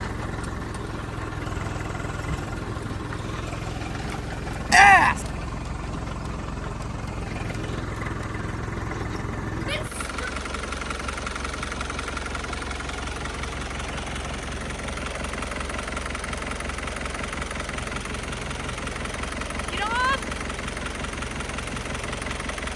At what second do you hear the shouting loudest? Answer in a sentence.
The loudest moment of the shouting is at 5 seconds.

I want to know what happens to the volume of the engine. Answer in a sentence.
The volume of the engine stays about the same.